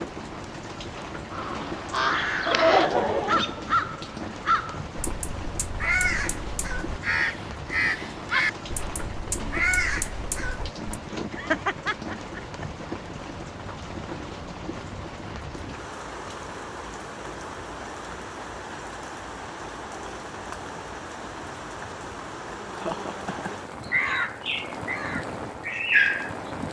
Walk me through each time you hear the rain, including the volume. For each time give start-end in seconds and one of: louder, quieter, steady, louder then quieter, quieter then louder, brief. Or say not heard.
0.0-26.6 steady.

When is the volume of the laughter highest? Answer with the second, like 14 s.
3 s.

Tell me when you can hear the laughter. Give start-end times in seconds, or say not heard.
2.5-3.9, 11.3-12.9, 22.7-23.6.